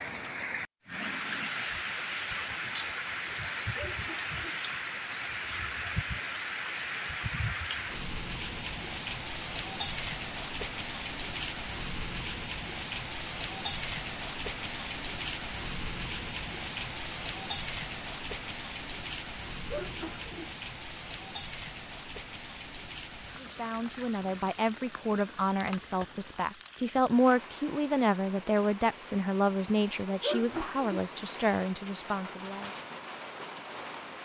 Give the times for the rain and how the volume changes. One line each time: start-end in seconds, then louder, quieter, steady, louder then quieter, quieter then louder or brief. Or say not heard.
0.0-34.2 quieter.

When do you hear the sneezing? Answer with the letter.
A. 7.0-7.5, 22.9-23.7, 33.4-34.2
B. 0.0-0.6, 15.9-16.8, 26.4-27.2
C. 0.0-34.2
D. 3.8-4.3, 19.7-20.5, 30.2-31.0
D.